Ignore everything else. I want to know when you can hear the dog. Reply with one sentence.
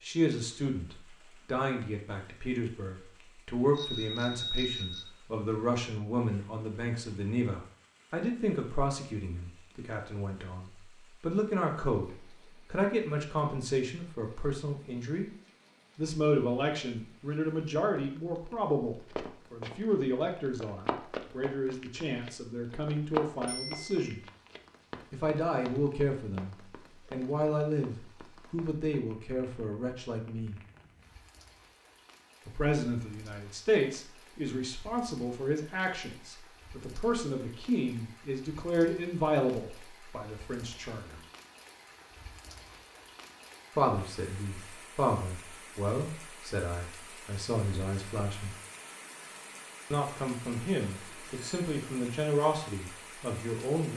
You can't hear the dog here.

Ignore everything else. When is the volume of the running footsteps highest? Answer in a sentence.
The volume of the running footsteps peaks at 23 seconds.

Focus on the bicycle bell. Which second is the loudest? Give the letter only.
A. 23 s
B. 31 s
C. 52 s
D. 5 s
D.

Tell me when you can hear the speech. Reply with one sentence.
The speech can be heard from 0.0 to 15.3 s, from 15.9 to 24.2 s, from 25.1 to 30.6 s, from 32.5 to 41.2 s, from 43.8 to 48.5 s and from 49.9 to 53.9 s.